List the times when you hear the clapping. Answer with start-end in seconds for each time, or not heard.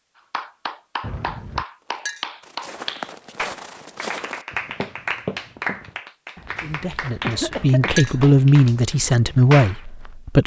0.3-9.8.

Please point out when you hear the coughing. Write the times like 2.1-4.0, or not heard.
1.0-1.6, 7.2-8.0.